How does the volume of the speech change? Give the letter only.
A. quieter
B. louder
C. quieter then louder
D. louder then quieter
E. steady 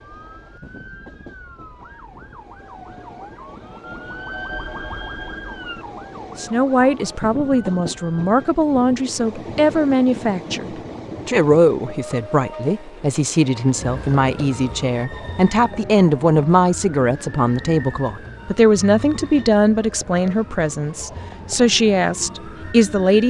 E.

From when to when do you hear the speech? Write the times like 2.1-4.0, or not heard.
6.3-23.2.